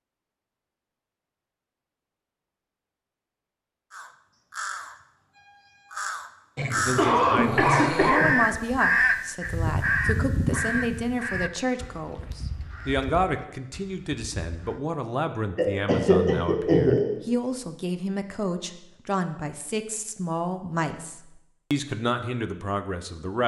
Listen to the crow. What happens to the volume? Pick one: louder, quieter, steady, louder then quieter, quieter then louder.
louder then quieter.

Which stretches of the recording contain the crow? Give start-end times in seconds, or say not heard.
3.9-14.8.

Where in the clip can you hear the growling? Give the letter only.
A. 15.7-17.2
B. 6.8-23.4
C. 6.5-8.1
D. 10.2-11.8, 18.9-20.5
C.